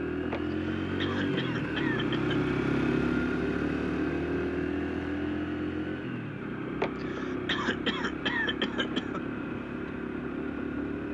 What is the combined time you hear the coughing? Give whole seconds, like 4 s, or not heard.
5 s.